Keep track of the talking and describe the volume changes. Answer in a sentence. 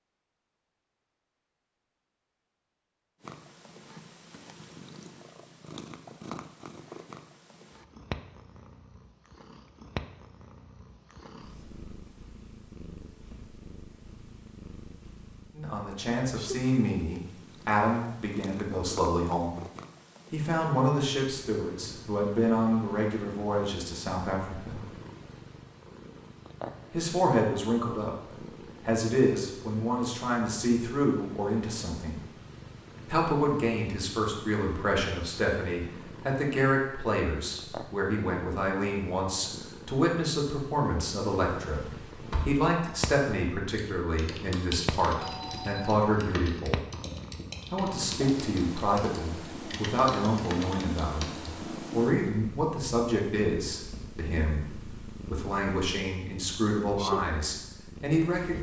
The loudness of the talking stays about the same.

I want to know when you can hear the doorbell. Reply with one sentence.
The doorbell can be heard from 45.2 to 46.0 s.